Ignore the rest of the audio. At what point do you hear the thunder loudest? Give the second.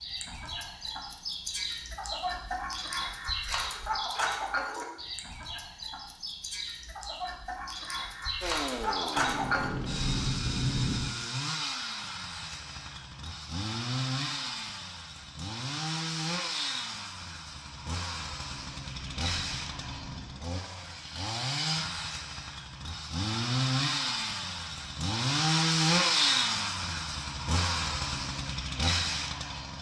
11 s.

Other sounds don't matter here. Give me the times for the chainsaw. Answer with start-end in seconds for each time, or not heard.
8.4-29.7.